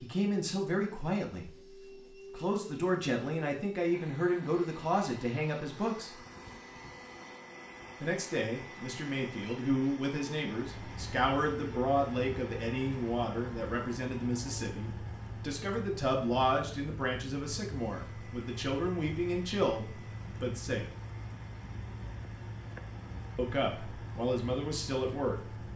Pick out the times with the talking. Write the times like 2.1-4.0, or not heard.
0.0-1.6, 2.3-6.2, 8.0-20.9, 23.4-25.6.